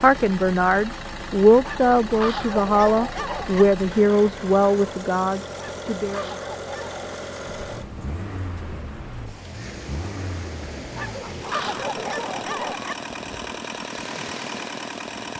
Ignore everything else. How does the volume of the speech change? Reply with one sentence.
The loudness of the speech goes down.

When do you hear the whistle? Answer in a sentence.
You can't hear the whistle here.